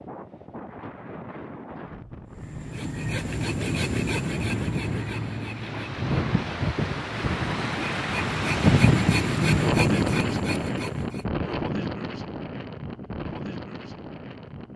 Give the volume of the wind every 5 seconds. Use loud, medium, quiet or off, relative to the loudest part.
medium, loud, medium.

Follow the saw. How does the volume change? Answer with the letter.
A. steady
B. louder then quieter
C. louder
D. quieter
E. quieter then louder
E.